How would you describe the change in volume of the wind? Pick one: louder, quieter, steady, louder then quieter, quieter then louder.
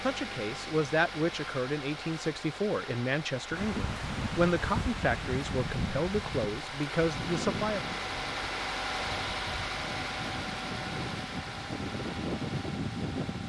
quieter then louder.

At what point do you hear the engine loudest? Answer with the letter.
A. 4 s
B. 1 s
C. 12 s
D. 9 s
D.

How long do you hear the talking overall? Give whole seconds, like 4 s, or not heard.
8 s.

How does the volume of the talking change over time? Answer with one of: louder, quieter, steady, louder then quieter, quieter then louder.
steady.